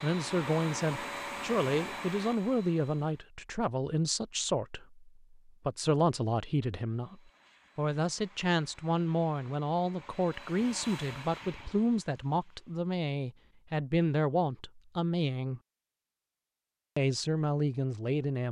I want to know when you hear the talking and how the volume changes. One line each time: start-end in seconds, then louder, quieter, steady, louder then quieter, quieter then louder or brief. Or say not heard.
0.0-15.6 steady
16.9-18.4 brief.